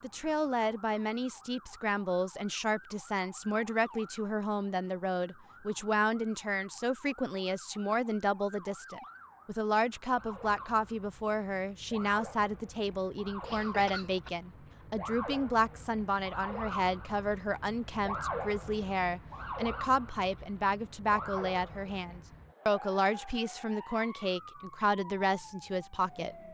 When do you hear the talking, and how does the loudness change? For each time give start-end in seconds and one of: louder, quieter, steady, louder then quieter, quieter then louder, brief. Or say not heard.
0.0-26.4 steady.